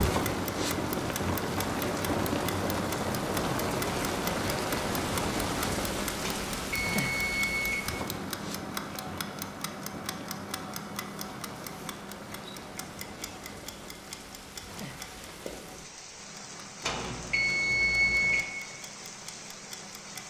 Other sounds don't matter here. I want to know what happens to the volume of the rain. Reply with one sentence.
The loudness of the rain goes down.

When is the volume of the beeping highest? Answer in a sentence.
The loudest moment of the beeping is at 18 seconds.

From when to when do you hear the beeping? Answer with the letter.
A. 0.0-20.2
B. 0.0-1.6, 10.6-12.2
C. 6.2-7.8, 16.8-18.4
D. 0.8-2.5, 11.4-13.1
C.